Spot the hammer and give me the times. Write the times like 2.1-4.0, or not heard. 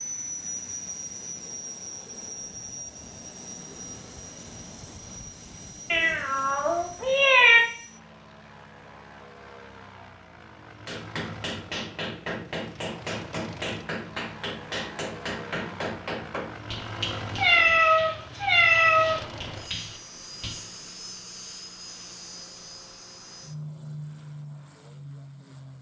10.8-20.7.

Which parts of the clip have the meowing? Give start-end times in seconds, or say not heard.
5.9-7.6, 17.4-19.2.